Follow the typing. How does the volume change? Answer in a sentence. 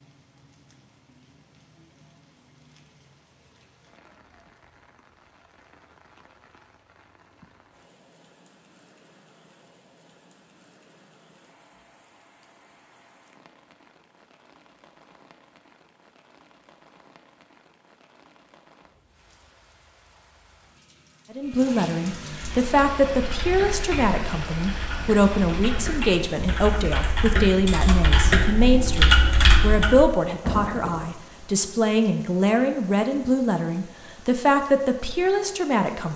The volume of the typing goes up.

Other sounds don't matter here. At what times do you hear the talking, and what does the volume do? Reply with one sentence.
You can hear the talking from 21.3 to 36.1 s, at a steady volume.